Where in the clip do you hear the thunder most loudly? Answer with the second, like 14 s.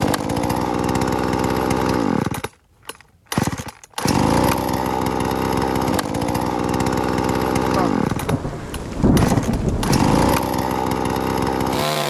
9 s.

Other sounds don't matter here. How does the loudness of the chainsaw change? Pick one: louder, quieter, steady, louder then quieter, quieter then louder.
steady.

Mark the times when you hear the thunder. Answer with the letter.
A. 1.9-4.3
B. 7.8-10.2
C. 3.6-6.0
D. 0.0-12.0
B.